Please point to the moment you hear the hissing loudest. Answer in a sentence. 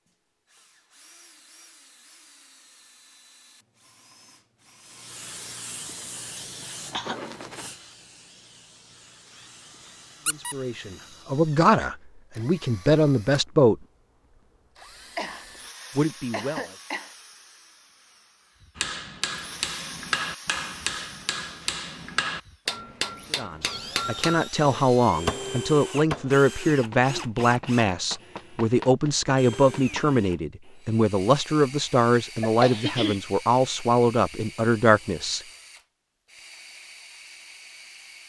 The volume of the hissing peaks at 7 seconds.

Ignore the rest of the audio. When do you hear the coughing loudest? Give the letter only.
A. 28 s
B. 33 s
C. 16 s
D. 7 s
B.